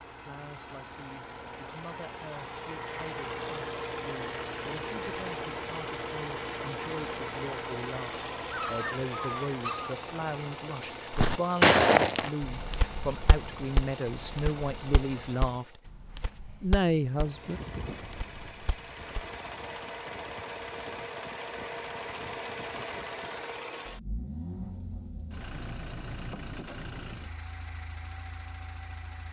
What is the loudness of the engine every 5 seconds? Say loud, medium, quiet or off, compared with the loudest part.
loud, loud, medium, medium, loud, medium.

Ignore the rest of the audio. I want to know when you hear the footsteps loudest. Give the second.
12 s.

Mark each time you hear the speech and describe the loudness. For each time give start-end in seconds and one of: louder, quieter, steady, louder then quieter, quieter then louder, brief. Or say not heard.
0.1-15.8 louder
16.6-17.6 brief.